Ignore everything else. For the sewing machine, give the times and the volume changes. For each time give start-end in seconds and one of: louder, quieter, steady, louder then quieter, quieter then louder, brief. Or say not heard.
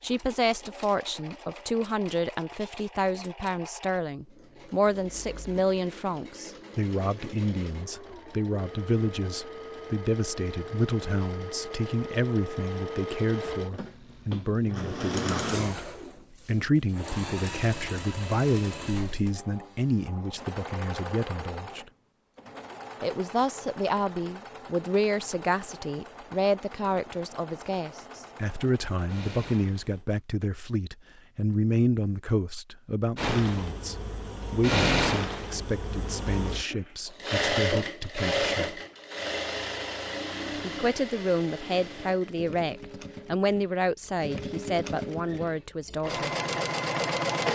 0.0-30.1 louder then quieter
33.1-47.4 quieter then louder.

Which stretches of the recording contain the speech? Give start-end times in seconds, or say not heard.
0.0-21.9, 23.0-38.8, 40.6-46.3.